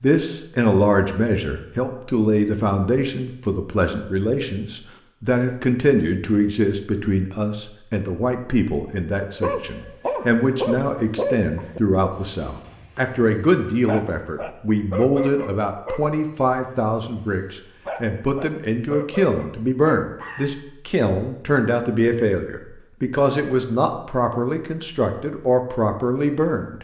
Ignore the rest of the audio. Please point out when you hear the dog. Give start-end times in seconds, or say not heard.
9.3-20.6.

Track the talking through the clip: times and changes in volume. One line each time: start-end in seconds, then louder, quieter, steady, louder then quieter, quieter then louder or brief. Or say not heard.
0.0-26.7 steady.